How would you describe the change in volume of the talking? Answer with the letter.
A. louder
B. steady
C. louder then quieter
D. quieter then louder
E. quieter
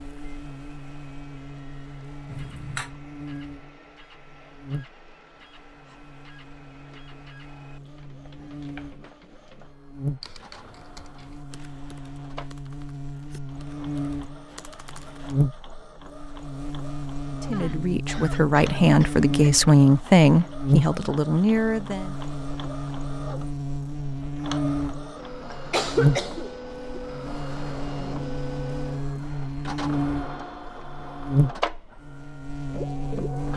C.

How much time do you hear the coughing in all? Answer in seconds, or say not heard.
4 s.